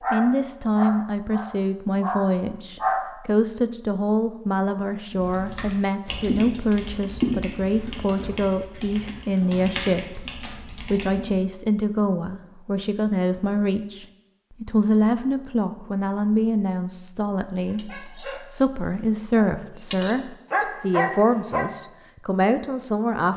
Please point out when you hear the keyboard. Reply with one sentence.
You can hear the keyboard from 5.1 to 11.4 s.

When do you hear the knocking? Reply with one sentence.
The knocking can't be heard in this clip.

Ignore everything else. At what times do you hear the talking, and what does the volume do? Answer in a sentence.
You can hear the talking from 0.1 to 23.3 s, at a steady volume.